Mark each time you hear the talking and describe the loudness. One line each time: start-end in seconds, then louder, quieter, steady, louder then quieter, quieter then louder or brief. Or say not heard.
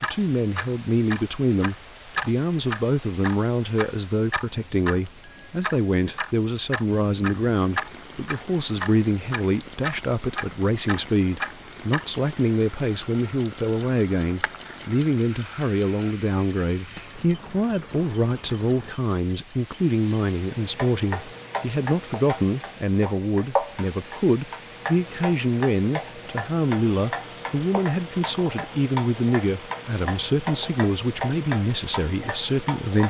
0.0-33.0 steady.